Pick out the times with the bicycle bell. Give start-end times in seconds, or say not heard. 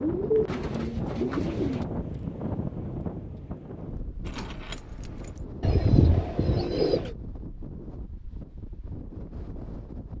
not heard.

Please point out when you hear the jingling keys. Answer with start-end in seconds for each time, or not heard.
4.2-5.5.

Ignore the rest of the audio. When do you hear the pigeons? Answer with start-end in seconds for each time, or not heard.
0.0-1.9, 5.6-7.1.